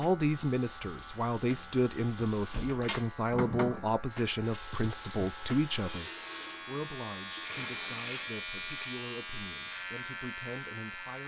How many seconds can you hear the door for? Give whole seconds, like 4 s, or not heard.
2 s.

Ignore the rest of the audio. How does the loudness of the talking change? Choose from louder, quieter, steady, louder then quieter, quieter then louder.
quieter.